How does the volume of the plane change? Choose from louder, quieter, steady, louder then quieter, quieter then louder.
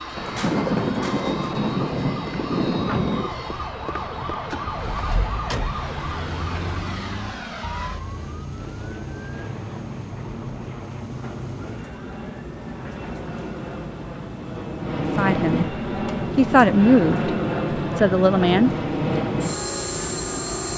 louder.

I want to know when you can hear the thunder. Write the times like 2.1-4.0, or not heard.
0.1-3.4.